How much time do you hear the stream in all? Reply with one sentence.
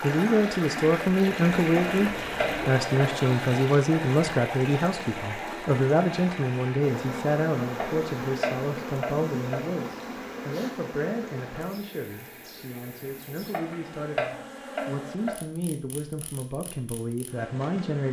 The stream can be heard for 14 seconds in total.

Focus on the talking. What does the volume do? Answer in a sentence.
The loudness of the talking goes down.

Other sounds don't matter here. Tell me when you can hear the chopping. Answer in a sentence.
The chopping can be heard from 1.8 to 3.0 s, from 7.8 to 9.6 s and from 13.5 to 15.3 s.